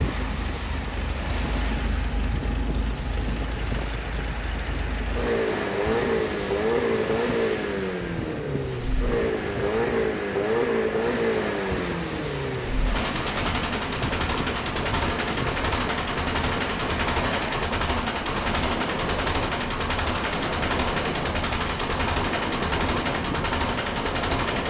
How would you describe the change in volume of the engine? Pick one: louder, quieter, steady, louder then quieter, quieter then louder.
louder.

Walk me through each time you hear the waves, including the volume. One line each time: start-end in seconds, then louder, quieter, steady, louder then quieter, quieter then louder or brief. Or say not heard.
0.0-24.6 steady.